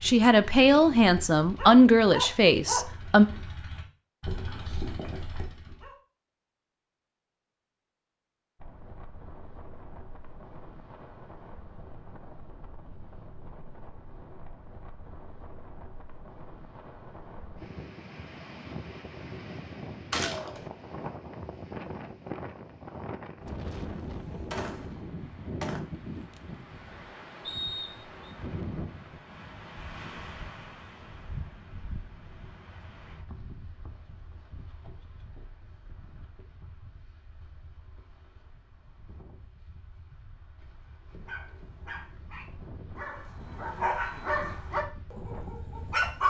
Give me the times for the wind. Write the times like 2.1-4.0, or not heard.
8.6-46.2.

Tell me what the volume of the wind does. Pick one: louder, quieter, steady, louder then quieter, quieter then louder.
louder then quieter.